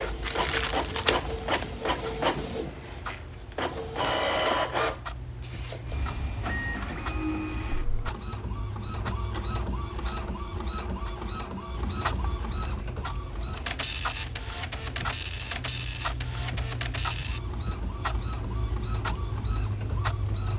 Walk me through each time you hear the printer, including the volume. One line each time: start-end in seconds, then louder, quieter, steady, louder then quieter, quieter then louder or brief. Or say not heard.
0.0-20.5 quieter.